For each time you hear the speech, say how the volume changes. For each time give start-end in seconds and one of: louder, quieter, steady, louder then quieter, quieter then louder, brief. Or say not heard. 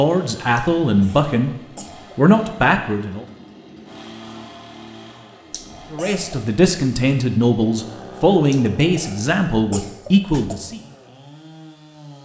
0.0-1.5 brief
2.1-3.2 brief
5.9-10.8 steady.